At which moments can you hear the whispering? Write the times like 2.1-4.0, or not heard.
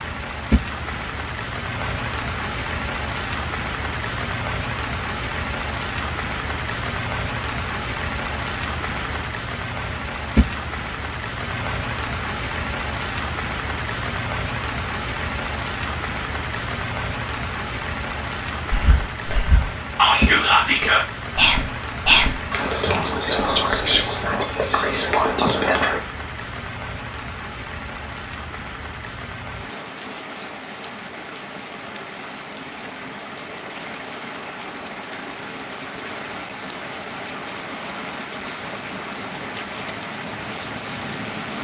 18.7-26.0.